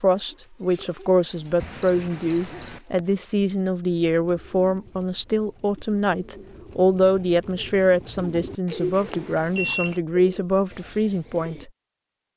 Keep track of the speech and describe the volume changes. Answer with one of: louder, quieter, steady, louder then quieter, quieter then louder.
steady.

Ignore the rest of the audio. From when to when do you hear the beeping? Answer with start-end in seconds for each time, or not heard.
1.6-2.8, 8.7-10.0.